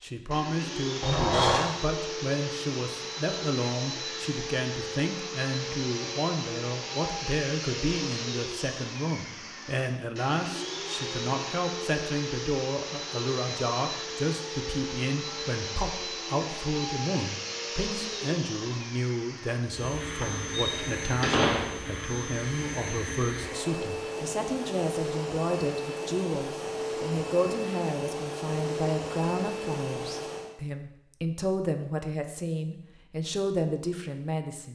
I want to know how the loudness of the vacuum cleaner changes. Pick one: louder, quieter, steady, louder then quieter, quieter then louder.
steady.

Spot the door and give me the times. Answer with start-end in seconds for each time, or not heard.
1.0-1.7, 20.2-21.8.